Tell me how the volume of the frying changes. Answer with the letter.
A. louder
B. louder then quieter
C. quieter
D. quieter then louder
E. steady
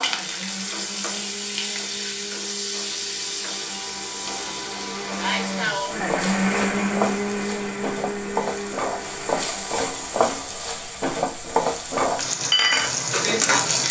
A.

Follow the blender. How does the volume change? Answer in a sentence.
The loudness of the blender goes up, then down.